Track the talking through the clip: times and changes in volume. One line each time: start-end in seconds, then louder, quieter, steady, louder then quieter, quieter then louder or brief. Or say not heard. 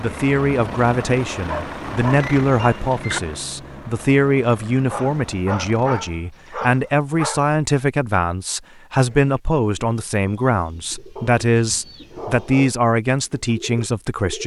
0.0-14.4 steady.